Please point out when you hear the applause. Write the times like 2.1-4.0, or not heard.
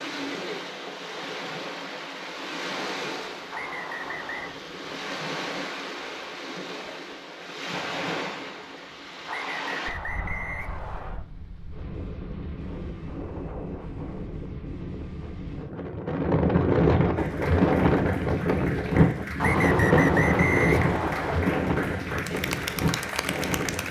17.1-23.8.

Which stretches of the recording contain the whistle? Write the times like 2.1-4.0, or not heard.
3.5-4.5, 9.2-11.2, 19.4-21.4.